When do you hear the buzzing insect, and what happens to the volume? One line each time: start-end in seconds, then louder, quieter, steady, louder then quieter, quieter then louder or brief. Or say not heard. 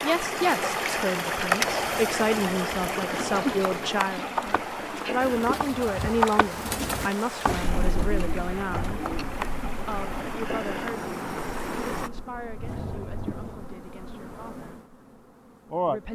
0.0-16.0 louder then quieter.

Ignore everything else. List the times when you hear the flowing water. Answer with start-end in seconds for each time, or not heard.
0.0-12.1.